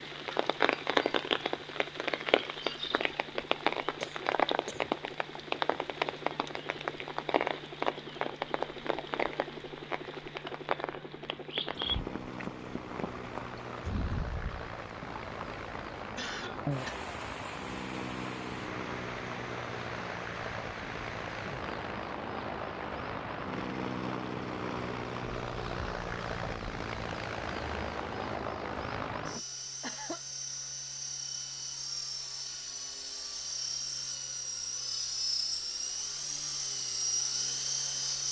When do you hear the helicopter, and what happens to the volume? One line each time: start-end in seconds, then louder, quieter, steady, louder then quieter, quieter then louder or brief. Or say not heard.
0.0-38.2 louder.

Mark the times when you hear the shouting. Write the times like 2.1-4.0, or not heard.
not heard.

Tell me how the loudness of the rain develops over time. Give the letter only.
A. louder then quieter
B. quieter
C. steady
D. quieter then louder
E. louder
B.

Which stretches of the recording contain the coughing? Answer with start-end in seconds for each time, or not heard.
4.0-4.9, 15.9-16.9, 29.4-30.2.